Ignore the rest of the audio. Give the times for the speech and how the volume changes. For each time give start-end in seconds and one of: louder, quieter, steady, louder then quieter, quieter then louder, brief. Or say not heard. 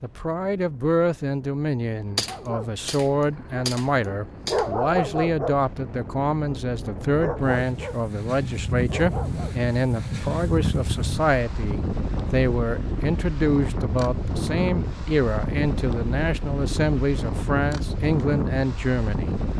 0.0-19.4 steady.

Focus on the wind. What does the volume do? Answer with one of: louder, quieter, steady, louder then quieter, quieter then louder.
louder.